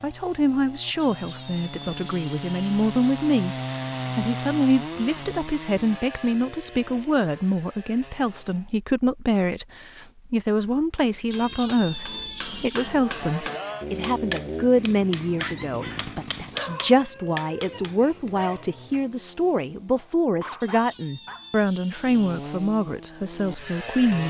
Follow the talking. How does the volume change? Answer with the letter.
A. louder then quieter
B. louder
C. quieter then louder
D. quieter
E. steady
E.